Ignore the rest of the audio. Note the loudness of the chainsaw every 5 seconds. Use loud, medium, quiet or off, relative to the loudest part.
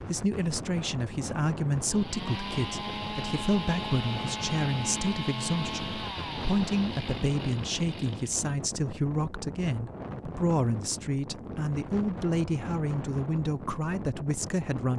loud, loud, off.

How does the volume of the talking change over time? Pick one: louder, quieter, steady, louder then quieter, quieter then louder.
steady.